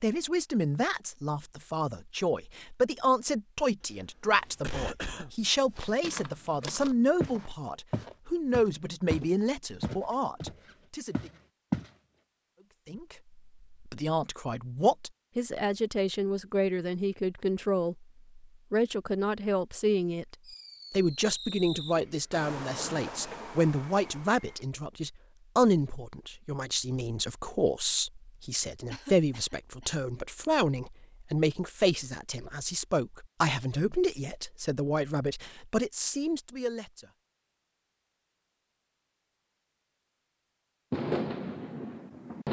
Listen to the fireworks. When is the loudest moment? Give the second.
41 s.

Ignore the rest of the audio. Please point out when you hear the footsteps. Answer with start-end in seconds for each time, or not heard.
5.8-11.9.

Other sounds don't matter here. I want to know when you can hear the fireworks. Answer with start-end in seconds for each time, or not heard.
20.4-24.6, 40.9-42.4.